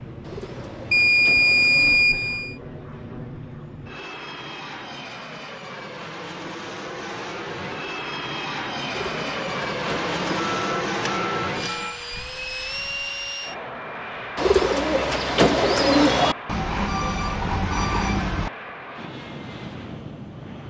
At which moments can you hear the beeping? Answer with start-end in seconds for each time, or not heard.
0.9-2.5, 10.2-11.9, 16.4-18.5.